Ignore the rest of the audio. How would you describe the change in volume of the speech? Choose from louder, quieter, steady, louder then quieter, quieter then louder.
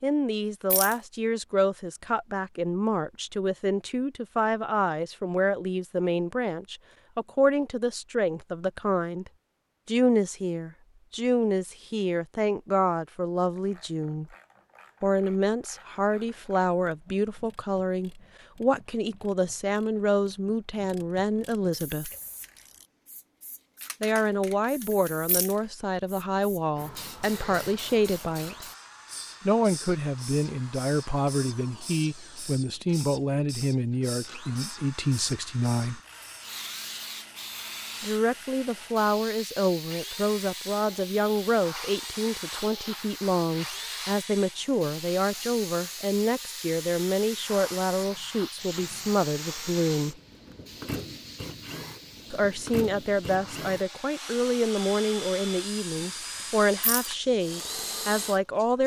steady.